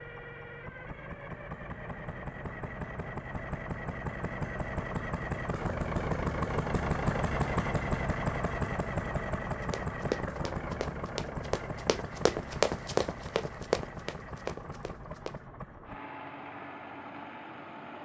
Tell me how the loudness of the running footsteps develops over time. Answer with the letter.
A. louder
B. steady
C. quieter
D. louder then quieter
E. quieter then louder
D.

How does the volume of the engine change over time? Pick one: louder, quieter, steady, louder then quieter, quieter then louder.
louder then quieter.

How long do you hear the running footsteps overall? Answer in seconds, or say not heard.
6 s.